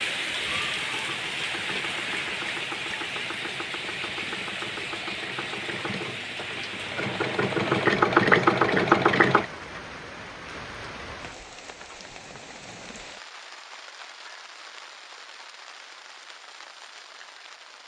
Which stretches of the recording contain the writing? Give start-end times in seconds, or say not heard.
not heard.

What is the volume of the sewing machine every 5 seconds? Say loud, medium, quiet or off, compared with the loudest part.
quiet, loud, off, off.